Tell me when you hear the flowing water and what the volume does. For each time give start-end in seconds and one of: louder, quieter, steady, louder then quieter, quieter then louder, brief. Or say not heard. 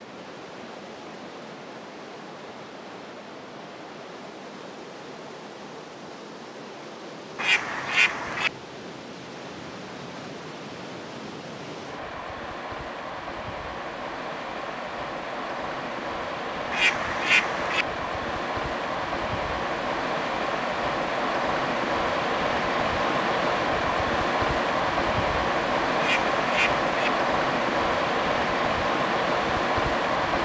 0.0-30.4 louder.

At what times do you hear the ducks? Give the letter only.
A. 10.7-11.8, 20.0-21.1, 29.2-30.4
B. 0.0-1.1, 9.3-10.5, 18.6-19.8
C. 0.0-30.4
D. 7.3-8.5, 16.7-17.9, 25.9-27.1
D.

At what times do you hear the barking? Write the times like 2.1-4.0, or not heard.
not heard.